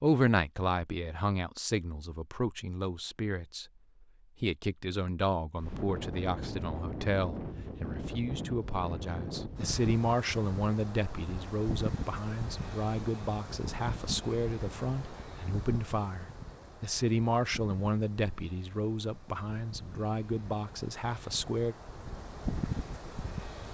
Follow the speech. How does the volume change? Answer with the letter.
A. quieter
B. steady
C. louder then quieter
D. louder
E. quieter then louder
B.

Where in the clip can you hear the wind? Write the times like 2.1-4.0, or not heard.
5.5-23.6.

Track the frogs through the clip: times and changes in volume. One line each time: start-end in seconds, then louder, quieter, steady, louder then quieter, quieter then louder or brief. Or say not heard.
not heard.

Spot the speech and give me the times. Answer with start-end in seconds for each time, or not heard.
0.0-21.8.